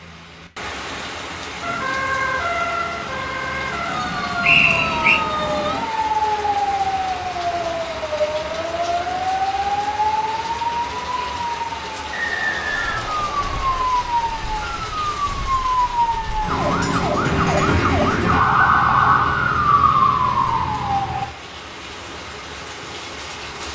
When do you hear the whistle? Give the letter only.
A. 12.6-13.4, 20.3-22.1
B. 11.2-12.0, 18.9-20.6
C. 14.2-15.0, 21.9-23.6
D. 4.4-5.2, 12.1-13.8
D.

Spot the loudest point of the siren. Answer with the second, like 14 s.
19 s.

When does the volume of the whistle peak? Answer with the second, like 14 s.
5 s.